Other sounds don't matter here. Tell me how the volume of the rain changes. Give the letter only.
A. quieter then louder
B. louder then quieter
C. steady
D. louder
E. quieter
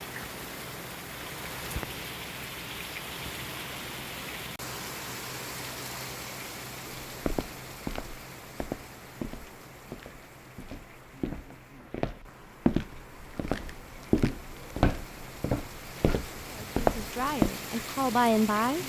A.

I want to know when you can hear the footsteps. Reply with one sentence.
The footsteps can be heard from 7.0 to 17.5 s.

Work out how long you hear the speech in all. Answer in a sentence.
You can hear the speech for 2 seconds altogether.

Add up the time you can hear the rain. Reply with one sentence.
You can hear the rain for 19 seconds altogether.